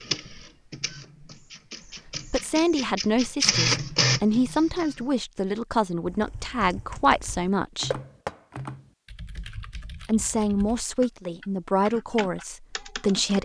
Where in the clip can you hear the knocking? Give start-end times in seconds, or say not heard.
7.9-8.6.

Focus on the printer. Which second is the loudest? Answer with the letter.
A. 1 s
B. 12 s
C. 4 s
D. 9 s
C.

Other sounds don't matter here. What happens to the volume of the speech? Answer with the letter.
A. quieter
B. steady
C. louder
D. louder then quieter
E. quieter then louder
B.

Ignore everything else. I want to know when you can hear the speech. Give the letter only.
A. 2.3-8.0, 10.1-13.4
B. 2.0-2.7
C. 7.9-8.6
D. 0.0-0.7
A.